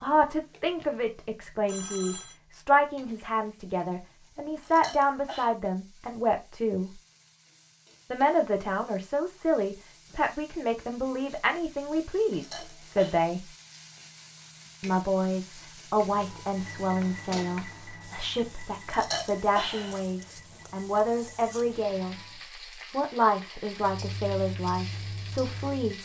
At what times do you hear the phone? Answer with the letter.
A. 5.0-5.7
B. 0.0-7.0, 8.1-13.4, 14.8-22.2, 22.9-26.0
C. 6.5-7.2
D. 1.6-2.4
D.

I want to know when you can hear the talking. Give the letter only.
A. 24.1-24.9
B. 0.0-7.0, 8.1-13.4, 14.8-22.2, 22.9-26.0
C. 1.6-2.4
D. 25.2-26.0
B.